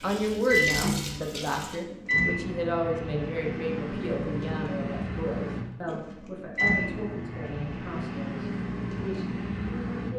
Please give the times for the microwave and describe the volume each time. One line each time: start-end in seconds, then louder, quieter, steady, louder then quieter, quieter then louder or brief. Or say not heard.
0.0-10.1 quieter.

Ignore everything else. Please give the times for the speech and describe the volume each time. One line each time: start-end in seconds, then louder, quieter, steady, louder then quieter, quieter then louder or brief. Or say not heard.
0.0-10.1 quieter.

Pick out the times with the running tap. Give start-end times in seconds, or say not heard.
0.0-1.8.